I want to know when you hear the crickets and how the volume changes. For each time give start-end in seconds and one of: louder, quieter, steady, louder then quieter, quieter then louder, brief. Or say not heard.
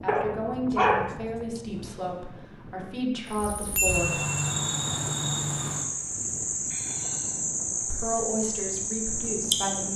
3.2-9.9 steady.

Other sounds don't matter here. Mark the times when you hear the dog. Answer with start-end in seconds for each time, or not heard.
0.1-1.6.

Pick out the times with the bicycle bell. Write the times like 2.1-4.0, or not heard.
3.2-4.5.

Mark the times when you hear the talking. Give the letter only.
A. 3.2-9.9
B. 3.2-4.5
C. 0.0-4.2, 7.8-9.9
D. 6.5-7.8
C.